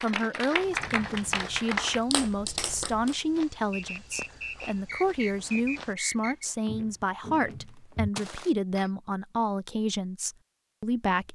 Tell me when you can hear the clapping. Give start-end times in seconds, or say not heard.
0.0-3.1.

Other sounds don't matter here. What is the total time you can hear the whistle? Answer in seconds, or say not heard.
3 s.